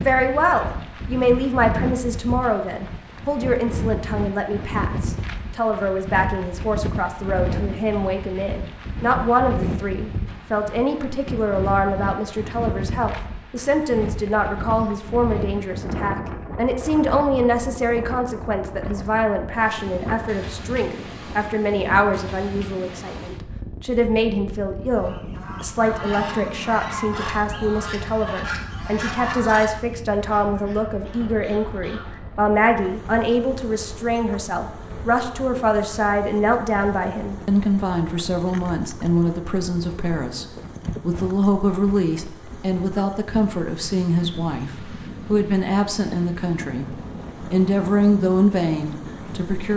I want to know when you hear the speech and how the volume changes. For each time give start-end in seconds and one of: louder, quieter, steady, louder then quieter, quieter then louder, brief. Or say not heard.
0.0-49.7 steady.